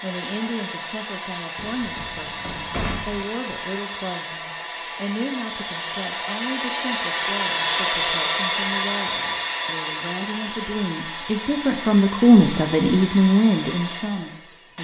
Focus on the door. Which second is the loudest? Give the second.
3 s.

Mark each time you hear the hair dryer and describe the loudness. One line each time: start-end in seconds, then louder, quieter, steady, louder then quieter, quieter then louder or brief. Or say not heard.
0.0-14.7 louder then quieter.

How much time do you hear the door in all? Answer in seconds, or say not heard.
2 s.